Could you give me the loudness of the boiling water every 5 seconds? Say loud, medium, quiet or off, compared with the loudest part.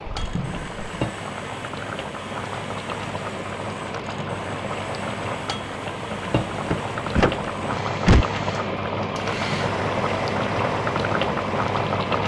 medium, loud, loud.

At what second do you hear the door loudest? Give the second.
8 s.